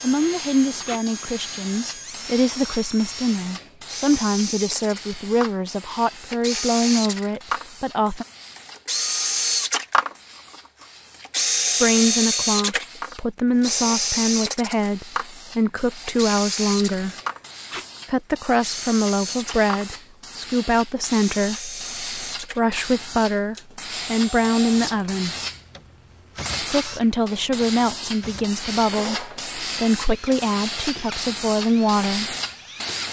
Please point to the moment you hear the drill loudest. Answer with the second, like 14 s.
12 s.